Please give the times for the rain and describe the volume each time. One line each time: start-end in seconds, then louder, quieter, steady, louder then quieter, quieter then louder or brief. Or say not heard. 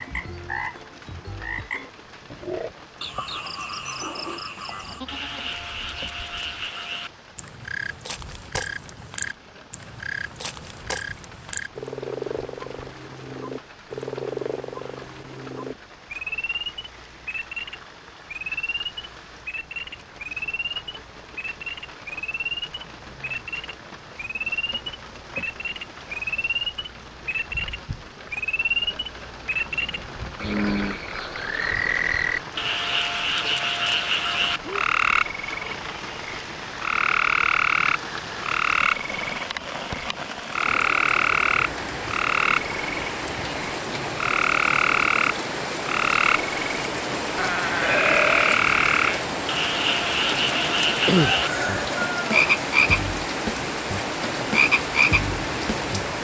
0.0-56.1 louder.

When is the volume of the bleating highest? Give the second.
48 s.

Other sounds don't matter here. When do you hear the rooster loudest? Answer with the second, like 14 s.
51 s.